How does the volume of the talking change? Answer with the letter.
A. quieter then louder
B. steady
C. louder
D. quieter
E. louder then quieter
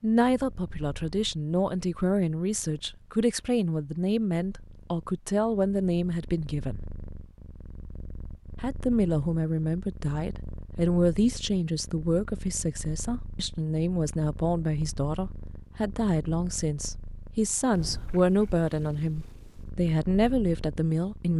B.